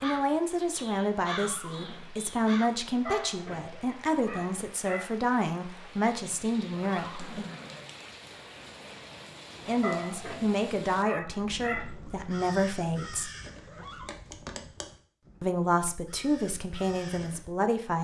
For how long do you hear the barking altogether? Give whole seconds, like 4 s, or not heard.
4 s.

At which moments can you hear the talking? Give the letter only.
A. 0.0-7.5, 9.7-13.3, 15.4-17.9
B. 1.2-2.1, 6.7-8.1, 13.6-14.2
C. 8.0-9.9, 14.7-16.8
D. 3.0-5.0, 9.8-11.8
A.